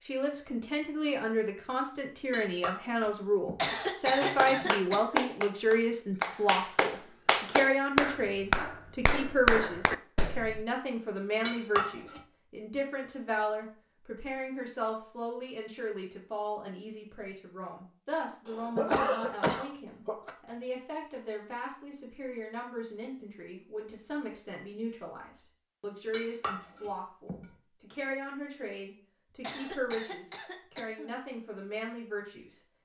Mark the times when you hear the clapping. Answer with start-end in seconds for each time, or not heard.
4.2-10.7.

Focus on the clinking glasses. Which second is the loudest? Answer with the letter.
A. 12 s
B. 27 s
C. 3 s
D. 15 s
A.